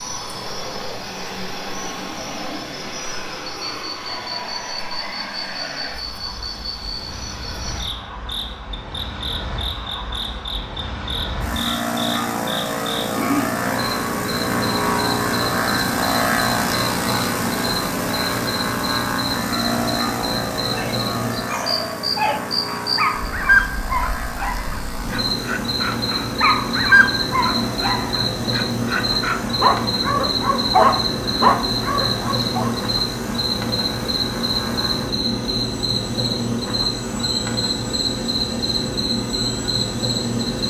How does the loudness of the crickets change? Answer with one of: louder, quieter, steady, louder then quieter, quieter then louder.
louder.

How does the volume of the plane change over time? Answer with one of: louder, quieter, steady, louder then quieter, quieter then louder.
louder then quieter.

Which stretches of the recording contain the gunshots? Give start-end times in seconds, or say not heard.
not heard.